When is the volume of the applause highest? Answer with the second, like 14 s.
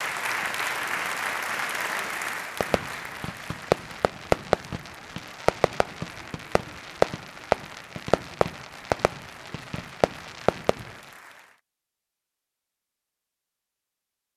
1 s.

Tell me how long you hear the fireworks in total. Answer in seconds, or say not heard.
8 s.